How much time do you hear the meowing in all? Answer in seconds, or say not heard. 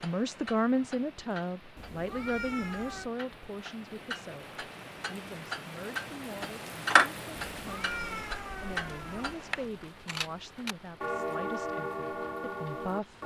3 s.